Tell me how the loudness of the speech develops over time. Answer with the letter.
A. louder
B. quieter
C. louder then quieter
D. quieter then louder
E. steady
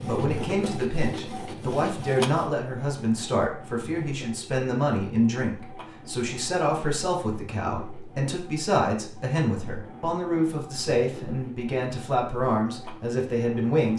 E.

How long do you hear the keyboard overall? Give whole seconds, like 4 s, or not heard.
not heard.